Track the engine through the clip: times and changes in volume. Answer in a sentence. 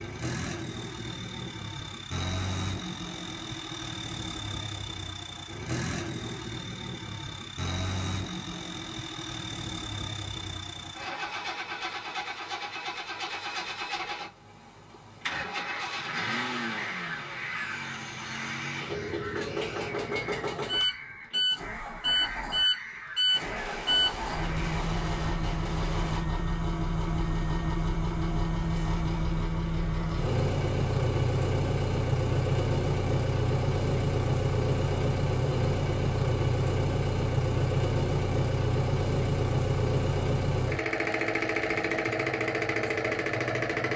The engine can be heard from 0.0 to 43.9 s, getting louder.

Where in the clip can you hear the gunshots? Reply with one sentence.
The gunshots can be heard from 23.4 to 26.2 s.